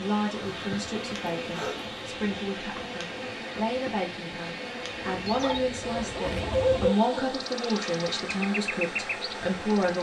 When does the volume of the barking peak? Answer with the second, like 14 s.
7 s.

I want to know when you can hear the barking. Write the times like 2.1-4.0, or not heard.
0.5-2.0, 5.4-7.3.